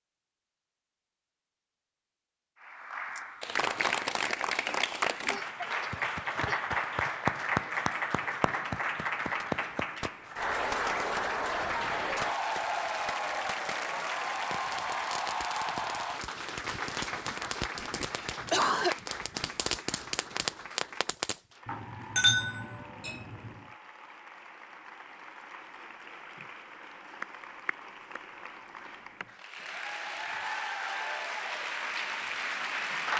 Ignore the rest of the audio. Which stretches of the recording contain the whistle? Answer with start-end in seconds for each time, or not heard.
not heard.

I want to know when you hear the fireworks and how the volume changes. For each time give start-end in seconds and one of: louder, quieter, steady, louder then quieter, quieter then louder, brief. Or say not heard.
9.3-21.4 louder.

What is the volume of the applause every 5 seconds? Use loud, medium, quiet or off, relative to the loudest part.
loud, loud, loud, medium, quiet, quiet, loud.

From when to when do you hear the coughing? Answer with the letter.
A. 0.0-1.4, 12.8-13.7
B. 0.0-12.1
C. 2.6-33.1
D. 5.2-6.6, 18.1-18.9
D.